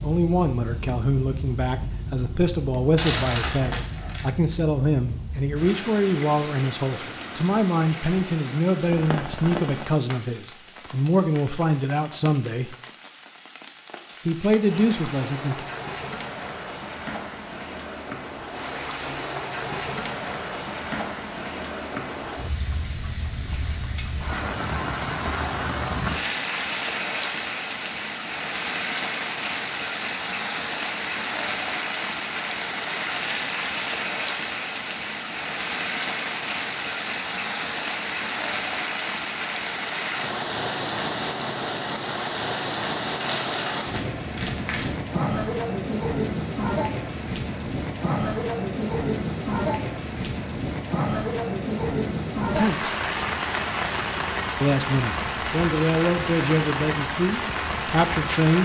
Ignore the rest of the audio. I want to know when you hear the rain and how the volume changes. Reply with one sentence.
The rain can be heard from 0.0 to 58.6 s, getting louder.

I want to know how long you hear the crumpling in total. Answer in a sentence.
You can hear the crumpling for 3 seconds altogether.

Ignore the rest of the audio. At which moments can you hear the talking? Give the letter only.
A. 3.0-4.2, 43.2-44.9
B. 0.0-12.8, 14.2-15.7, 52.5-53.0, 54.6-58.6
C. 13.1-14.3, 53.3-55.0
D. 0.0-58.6
B.